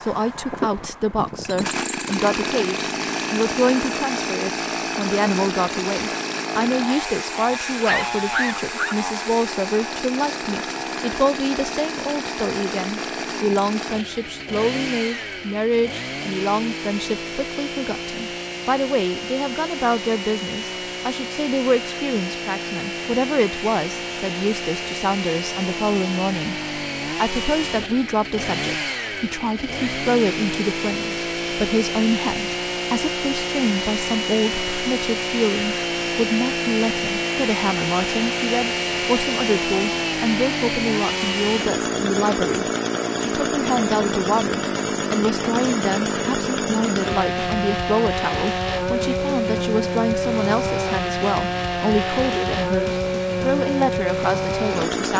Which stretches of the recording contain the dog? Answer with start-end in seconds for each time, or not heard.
7.7-8.9.